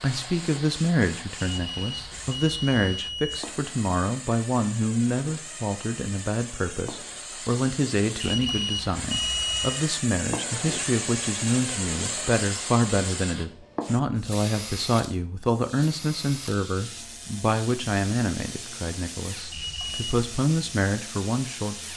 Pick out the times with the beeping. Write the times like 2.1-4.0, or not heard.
1.4-3.4, 8.2-9.8, 19.5-20.1.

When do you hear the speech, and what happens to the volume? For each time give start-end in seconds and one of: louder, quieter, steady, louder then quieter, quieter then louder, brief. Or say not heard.
0.0-21.8 steady.